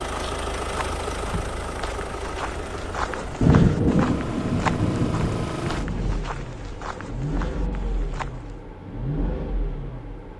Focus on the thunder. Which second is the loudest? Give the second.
4 s.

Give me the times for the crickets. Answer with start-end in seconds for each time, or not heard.
not heard.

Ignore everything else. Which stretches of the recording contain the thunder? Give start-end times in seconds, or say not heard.
3.4-6.2.